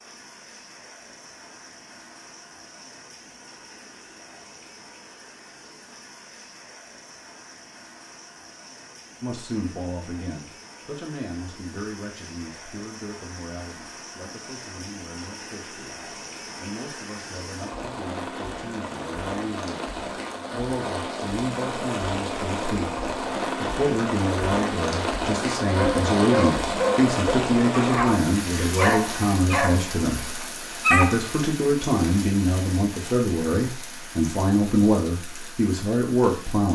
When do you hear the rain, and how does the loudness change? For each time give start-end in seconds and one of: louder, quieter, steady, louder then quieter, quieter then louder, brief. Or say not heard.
0.0-36.7 louder then quieter.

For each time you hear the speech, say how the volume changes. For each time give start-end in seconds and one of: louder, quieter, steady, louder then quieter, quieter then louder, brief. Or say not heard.
9.2-36.7 louder.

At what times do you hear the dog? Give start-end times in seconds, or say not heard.
25.8-31.4.